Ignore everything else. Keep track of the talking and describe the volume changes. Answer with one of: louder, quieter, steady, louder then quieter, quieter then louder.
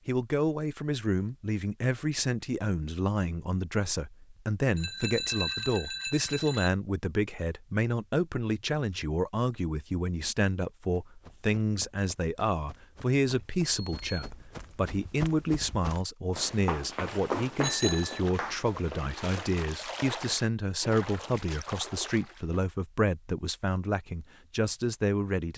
steady.